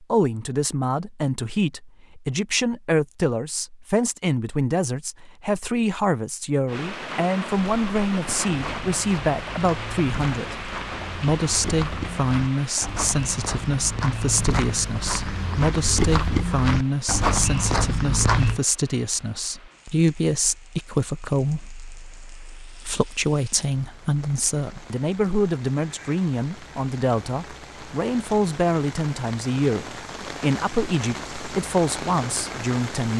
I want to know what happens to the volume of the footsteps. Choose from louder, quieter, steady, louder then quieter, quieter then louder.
louder.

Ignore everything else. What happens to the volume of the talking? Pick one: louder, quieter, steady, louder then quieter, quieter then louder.
steady.